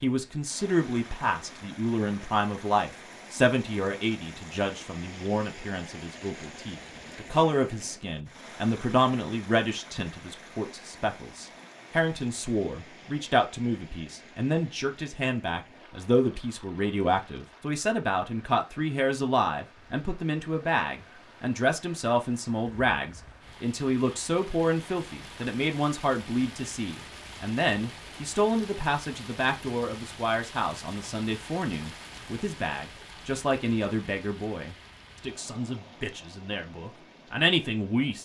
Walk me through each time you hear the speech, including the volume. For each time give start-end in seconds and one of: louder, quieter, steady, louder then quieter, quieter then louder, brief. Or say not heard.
0.0-38.1 steady.